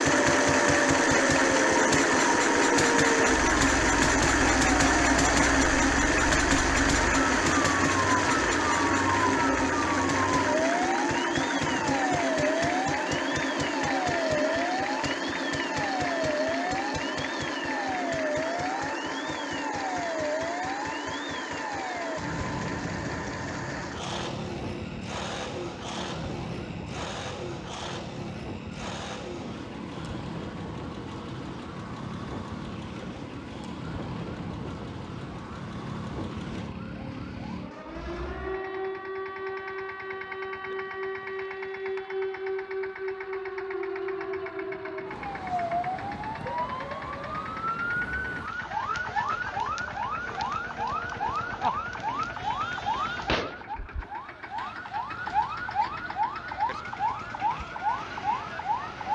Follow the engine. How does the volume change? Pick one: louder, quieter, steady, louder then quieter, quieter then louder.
quieter.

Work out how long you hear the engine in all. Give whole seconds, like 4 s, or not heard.
59 s.